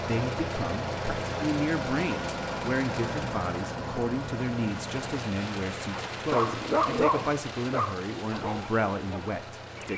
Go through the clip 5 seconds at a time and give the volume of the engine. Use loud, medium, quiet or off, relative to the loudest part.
loud, medium.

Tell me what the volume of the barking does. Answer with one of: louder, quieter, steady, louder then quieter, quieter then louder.
quieter.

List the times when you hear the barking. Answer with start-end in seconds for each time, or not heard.
5.9-9.9.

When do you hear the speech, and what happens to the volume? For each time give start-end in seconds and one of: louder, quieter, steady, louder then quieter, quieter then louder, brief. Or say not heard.
0.0-9.9 steady.